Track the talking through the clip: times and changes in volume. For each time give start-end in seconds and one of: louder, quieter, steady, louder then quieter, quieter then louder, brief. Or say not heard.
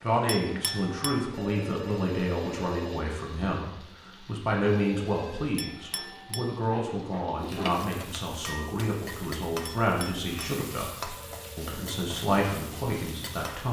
0.0-13.6 steady.